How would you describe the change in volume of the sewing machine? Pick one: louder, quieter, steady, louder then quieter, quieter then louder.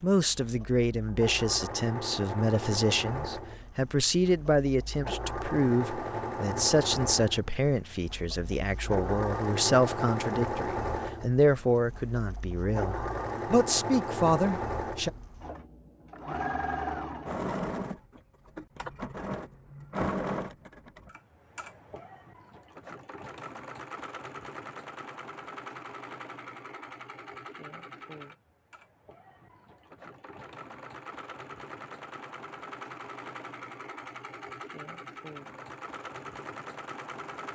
quieter.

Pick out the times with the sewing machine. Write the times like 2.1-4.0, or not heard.
0.0-37.5.